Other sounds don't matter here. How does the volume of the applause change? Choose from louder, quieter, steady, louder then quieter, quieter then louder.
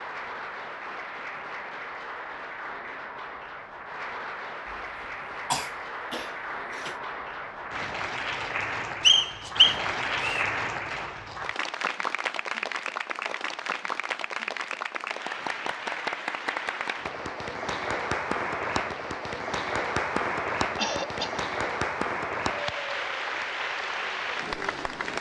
louder.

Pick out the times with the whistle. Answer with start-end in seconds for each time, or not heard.
9.0-10.4.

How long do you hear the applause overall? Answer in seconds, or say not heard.
25 s.